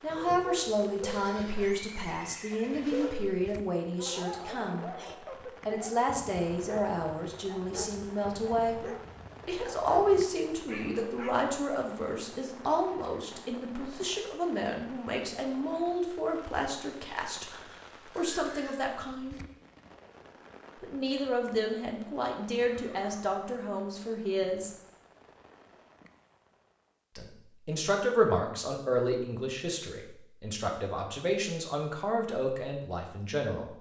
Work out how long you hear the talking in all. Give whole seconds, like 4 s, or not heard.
28 s.